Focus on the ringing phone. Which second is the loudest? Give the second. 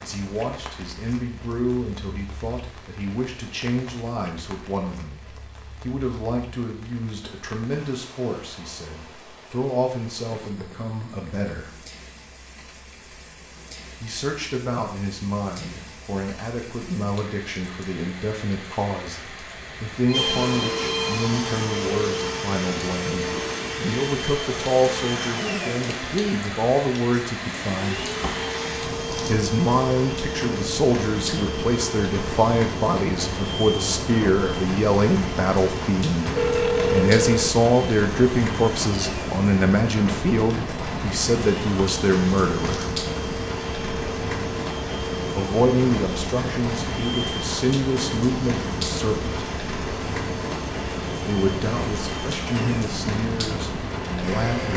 37 s.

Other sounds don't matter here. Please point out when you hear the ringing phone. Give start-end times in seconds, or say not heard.
20.1-21.3, 36.4-37.5.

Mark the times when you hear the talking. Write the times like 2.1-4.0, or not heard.
0.0-11.8, 14.0-28.1, 29.2-42.9, 45.4-49.4, 51.2-54.7.